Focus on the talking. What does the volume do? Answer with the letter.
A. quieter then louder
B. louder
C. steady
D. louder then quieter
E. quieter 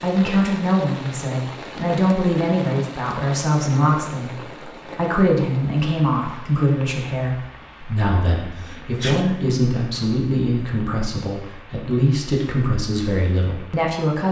C.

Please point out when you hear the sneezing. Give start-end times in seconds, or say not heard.
8.6-9.3.